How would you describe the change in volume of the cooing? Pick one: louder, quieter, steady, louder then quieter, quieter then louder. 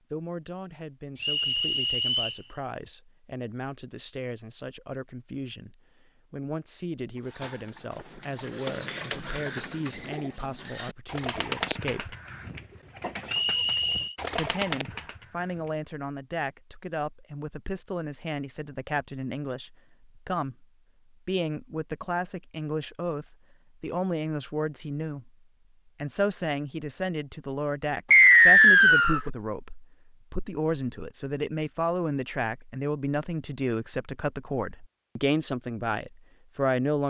quieter then louder.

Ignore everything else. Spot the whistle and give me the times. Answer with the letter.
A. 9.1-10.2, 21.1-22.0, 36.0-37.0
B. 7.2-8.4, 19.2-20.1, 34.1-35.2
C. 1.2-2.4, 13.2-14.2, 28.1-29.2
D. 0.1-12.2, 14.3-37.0
C.